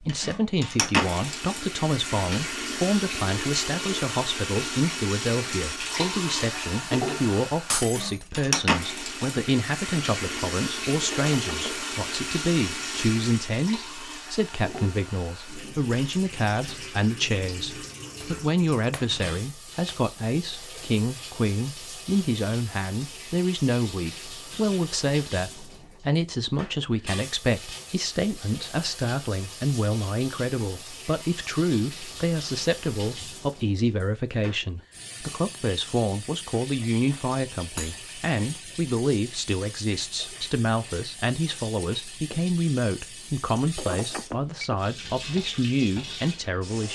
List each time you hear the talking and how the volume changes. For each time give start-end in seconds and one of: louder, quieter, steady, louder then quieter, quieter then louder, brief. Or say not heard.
0.0-46.9 steady.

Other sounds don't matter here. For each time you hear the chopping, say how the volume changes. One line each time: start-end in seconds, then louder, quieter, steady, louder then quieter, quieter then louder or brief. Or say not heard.
not heard.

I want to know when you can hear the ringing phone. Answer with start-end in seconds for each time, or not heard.
11.1-12.1, 43.8-44.9.